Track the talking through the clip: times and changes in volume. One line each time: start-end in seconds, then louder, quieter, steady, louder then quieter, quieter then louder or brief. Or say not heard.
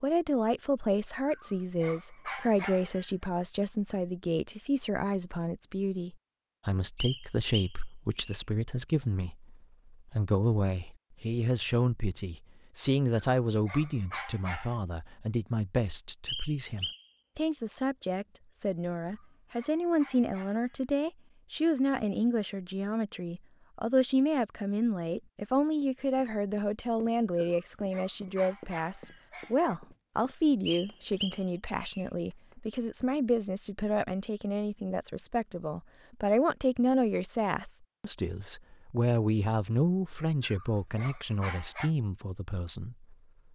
0.0-43.1 steady.